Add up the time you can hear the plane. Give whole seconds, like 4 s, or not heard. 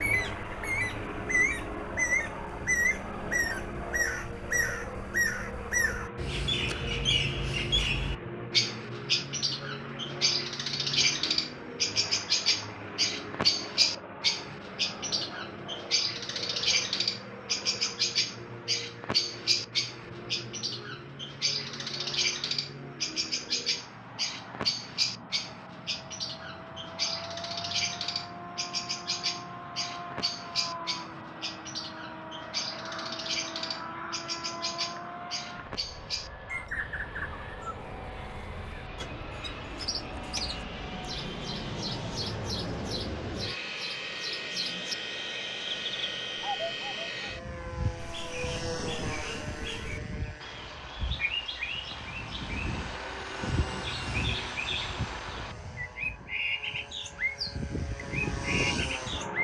59 s.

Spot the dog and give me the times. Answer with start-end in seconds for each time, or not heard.
not heard.